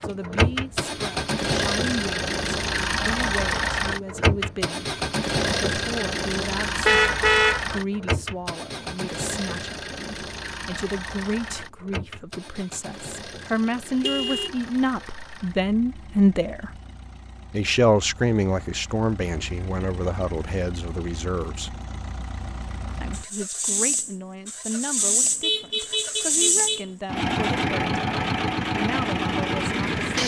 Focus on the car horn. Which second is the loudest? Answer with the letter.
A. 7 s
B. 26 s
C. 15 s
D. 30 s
A.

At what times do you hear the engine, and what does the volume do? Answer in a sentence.
The engine can be heard from 0.0 to 30.2 s, getting quieter then louder.